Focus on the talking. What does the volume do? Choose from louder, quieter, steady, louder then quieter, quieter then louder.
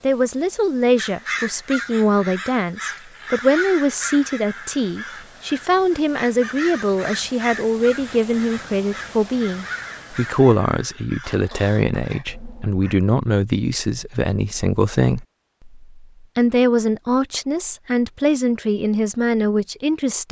steady.